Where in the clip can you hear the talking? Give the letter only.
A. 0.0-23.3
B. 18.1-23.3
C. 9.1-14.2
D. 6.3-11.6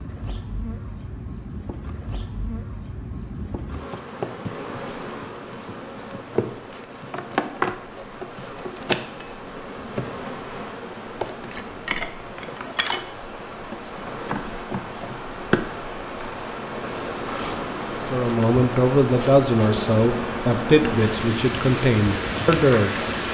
B.